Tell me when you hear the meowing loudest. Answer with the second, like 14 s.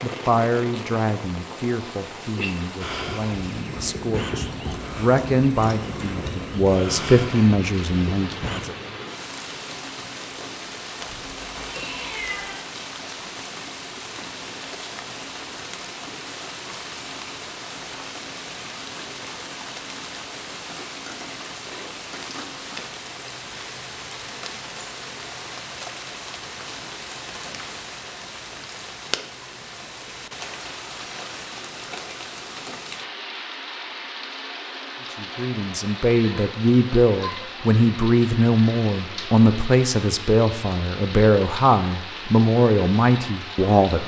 12 s.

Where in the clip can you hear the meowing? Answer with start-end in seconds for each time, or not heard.
10.9-12.6.